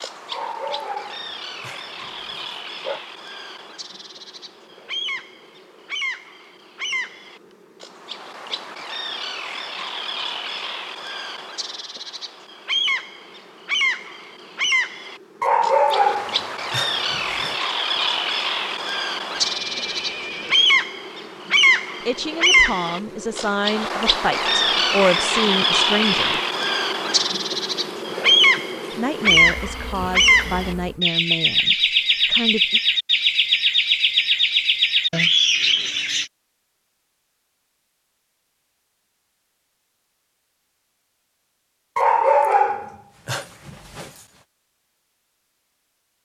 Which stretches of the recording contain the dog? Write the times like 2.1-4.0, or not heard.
0.3-3.0, 15.4-17.6, 42.0-44.1.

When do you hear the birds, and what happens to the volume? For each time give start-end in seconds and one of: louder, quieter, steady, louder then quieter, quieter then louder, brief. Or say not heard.
0.0-36.2 louder.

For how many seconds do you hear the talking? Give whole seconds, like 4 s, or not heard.
8 s.